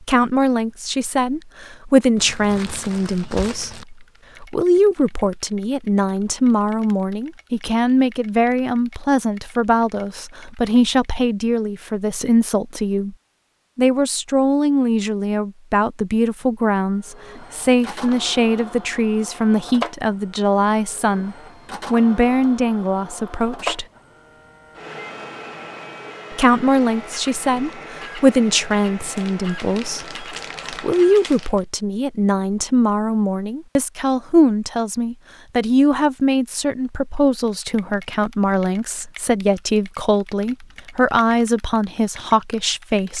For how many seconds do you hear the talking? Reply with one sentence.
The talking can be heard for 40 seconds in total.